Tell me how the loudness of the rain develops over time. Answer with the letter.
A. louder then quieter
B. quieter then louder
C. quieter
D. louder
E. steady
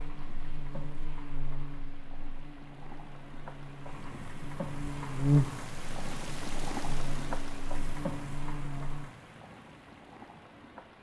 A.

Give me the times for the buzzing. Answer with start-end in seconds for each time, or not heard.
0.0-9.1.